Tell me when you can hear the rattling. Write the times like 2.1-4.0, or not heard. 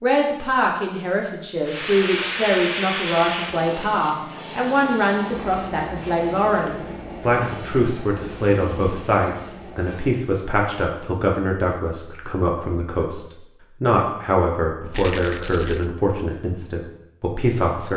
14.9-15.9.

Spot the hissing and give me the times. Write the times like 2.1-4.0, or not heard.
1.6-10.3.